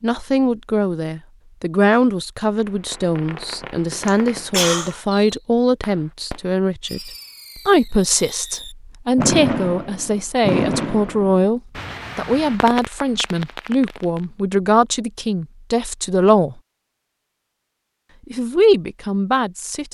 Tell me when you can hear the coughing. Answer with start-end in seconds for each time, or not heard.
4.0-5.0.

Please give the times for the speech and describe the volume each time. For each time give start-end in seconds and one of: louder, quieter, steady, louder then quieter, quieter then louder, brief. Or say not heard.
0.0-16.6 steady
18.3-19.8 brief.